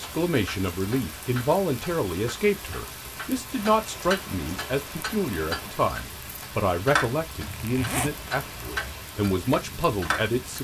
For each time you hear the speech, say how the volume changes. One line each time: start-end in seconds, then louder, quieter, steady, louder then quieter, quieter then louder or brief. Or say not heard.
0.0-10.5 steady.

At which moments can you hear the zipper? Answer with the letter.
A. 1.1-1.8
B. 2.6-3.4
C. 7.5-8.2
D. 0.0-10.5
C.